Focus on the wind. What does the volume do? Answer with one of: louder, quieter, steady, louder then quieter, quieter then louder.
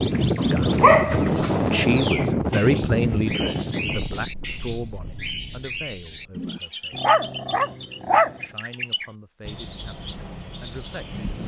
quieter.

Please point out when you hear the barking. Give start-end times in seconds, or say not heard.
0.3-2.1, 6.9-8.4.